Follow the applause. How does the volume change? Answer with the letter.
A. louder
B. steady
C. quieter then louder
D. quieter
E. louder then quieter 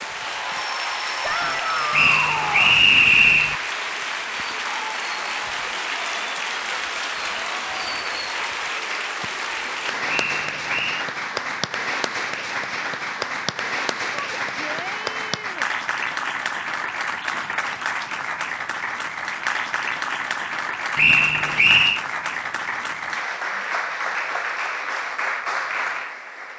B.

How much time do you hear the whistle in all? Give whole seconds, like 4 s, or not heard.
4 s.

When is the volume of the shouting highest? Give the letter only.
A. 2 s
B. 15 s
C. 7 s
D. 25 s
A.